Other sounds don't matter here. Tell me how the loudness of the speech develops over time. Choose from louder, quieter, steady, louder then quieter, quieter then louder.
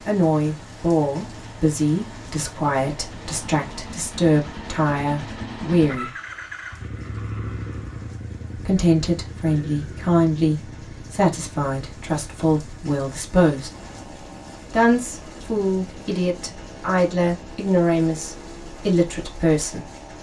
steady.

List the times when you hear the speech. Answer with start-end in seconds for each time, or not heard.
0.1-6.1, 8.6-13.7, 14.7-19.9.